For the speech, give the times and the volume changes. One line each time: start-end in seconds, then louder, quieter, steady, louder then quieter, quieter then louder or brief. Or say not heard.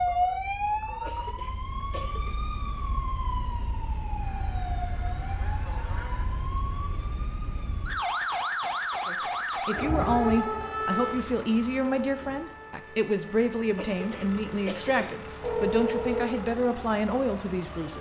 9.1-17.9 steady.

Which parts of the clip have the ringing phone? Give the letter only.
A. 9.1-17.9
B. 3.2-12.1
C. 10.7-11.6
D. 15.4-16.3
D.